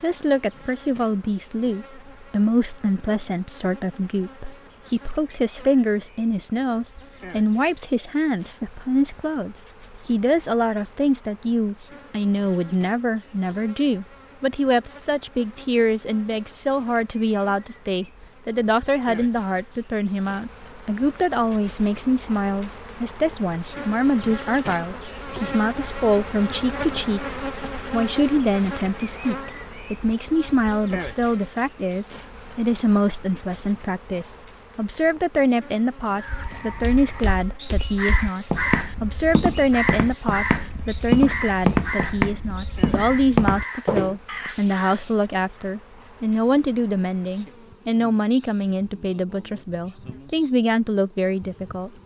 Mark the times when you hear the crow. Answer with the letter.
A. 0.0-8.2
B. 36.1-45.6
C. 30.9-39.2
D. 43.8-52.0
B.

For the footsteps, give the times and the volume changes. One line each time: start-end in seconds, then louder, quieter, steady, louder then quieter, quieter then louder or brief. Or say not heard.
36.2-44.5 louder.